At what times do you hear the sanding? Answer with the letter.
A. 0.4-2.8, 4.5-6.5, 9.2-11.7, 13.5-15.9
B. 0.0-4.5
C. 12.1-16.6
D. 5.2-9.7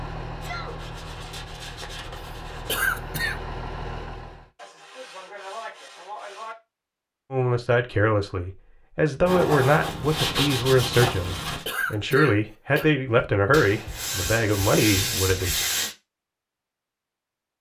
A.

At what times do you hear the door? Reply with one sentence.
You can't hear the door here.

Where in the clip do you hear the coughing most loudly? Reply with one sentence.
The loudest moment of the coughing is at 3 seconds.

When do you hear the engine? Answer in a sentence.
You can hear the engine from 0.0 to 4.5 s.